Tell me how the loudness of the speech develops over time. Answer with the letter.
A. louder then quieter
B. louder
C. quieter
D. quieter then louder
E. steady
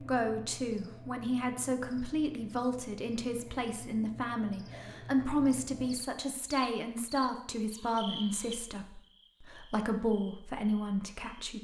E.